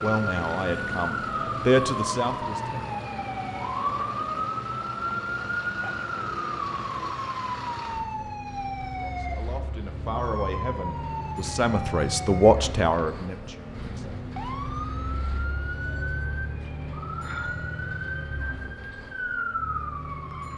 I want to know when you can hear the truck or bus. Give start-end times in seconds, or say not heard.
0.0-20.5.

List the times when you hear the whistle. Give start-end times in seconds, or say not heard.
not heard.